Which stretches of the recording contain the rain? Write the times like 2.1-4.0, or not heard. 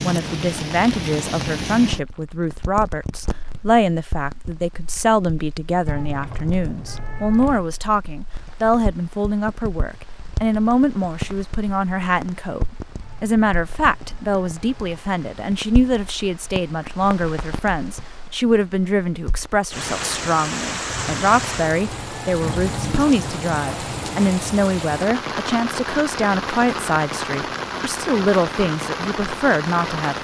0.0-30.1.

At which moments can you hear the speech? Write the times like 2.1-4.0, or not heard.
0.0-30.1.